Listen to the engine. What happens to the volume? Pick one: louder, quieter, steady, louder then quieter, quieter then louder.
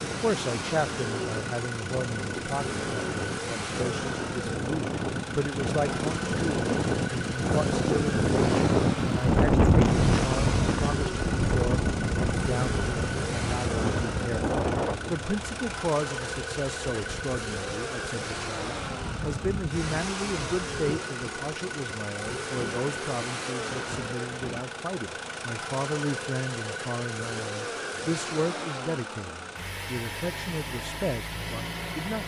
steady.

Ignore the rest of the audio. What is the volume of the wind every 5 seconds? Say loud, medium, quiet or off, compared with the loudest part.
medium, loud, loud, quiet, quiet, off, off.